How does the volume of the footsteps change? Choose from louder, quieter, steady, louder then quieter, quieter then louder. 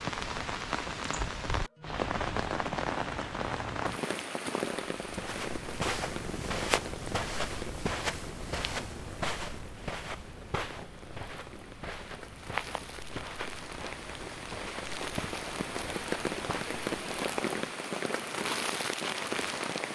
quieter.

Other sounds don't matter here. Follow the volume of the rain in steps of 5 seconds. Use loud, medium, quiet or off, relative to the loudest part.
loud, medium, medium, loud.